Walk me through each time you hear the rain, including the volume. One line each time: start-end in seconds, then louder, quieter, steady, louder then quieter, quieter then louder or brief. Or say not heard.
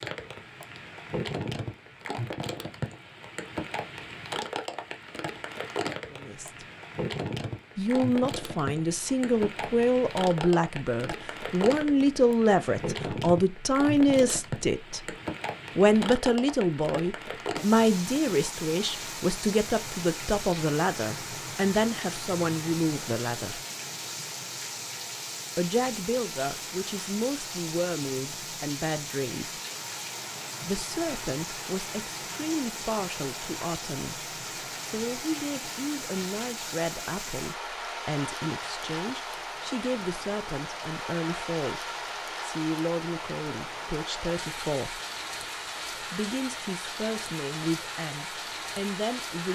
0.0-49.5 steady.